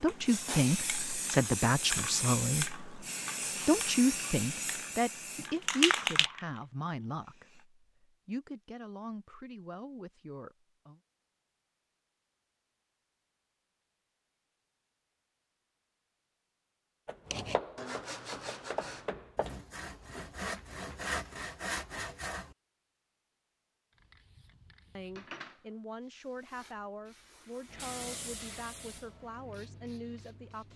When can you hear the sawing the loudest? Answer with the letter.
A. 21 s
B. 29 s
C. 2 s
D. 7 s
A.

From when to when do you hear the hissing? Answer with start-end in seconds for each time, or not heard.
0.0-7.7, 23.9-30.7.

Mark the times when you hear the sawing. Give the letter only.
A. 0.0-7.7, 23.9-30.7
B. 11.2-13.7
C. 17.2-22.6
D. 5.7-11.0
C.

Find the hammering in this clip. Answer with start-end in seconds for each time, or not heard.
17.1-19.6.